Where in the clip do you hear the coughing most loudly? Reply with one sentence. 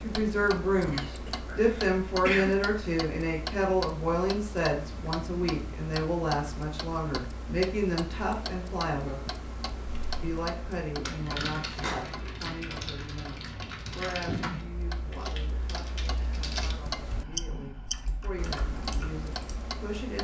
The volume of the coughing peaks at 2 seconds.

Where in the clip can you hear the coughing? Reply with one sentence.
You can hear the coughing from 0.8 to 2.6 s.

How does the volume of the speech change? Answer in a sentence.
The volume of the speech goes down.